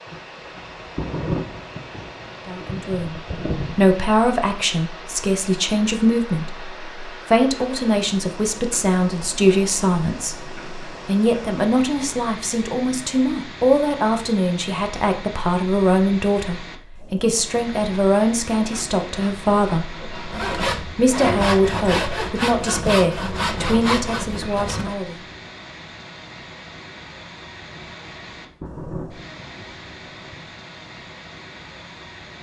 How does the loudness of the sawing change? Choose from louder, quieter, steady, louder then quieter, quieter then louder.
louder.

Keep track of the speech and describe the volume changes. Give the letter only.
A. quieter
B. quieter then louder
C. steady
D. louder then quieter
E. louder
C.